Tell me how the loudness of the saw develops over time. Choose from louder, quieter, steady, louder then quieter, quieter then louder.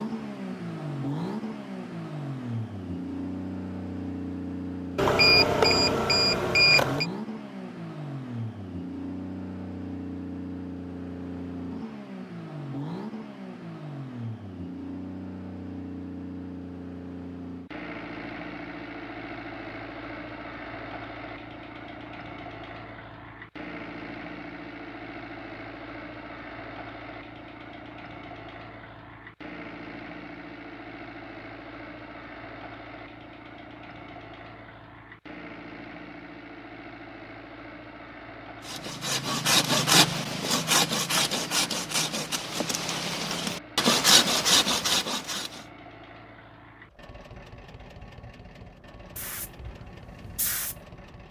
quieter then louder.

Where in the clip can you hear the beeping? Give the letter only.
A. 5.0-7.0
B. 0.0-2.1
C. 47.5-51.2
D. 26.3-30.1
A.